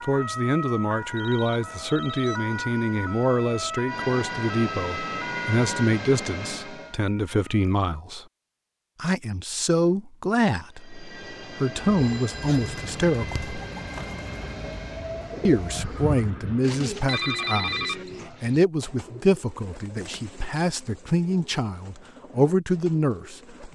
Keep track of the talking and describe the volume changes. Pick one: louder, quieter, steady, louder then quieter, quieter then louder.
steady.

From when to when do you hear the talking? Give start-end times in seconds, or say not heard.
0.0-8.2, 9.0-13.6, 15.4-23.7.